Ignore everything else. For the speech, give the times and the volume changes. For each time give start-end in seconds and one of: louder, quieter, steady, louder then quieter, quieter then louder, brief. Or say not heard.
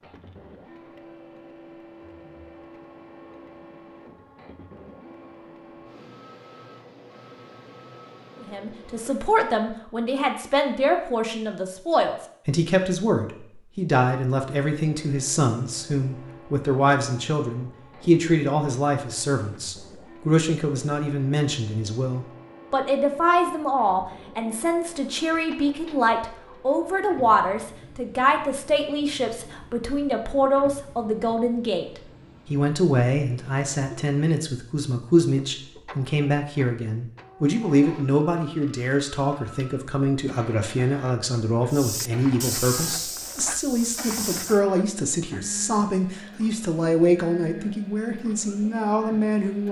8.4-49.6 steady.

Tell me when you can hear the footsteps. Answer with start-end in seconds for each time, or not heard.
41.7-44.6.